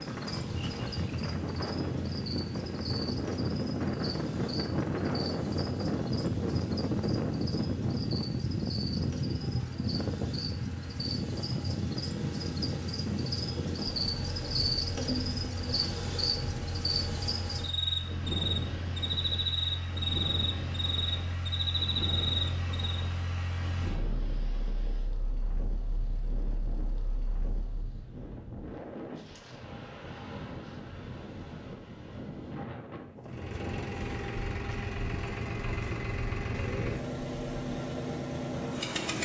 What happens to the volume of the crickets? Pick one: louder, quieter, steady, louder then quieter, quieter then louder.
louder.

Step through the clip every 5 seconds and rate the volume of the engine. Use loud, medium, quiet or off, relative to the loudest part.
quiet, quiet, quiet, medium, medium, quiet, loud, loud.